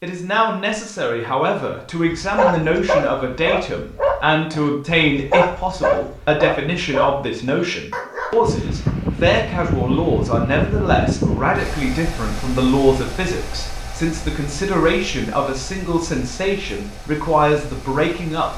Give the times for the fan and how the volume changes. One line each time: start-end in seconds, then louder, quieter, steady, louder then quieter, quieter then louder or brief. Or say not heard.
8.4-18.5 quieter.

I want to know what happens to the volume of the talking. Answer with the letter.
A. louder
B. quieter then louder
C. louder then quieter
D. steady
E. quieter
D.